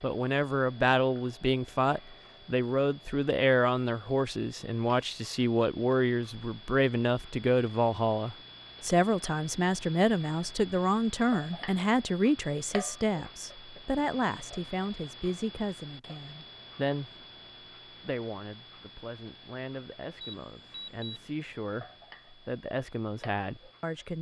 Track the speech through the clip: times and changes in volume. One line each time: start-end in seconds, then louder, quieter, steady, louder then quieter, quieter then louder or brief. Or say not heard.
0.0-17.2 quieter
17.9-24.1 louder.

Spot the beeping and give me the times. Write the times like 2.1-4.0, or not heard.
20.2-21.3.